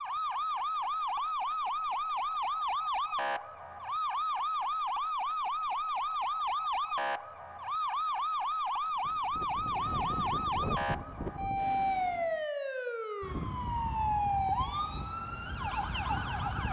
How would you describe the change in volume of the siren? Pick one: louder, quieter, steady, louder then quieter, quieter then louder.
steady.